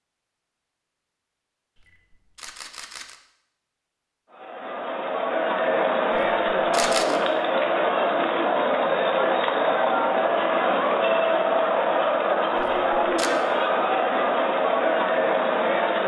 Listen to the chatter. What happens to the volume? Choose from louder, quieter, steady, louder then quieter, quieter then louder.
steady.